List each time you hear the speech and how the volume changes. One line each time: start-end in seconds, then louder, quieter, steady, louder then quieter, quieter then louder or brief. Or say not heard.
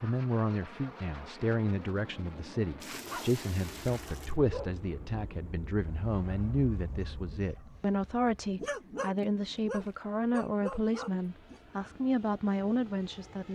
0.0-13.5 steady.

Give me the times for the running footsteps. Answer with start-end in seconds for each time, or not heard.
not heard.